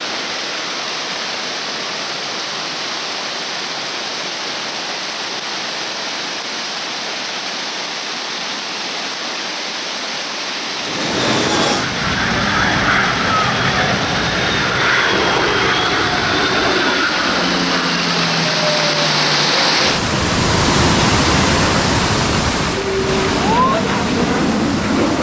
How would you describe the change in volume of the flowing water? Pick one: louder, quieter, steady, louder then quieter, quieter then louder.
louder.